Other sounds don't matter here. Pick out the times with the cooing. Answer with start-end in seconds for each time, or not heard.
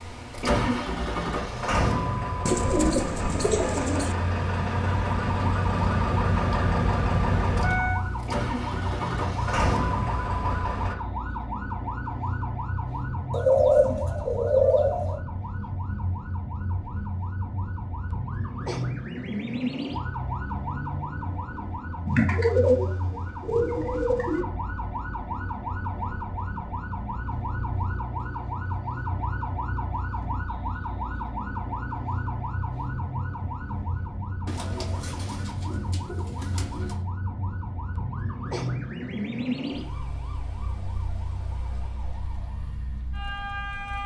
2.5-4.2, 13.3-15.2, 22.1-24.4, 34.5-37.0.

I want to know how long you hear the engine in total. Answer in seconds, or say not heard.
11 s.